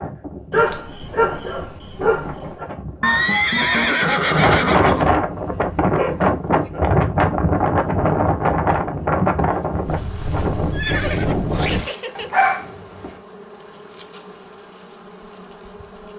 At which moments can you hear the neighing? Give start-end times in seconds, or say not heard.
3.0-5.0, 10.7-12.4.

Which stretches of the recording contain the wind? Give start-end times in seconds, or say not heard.
0.0-11.8.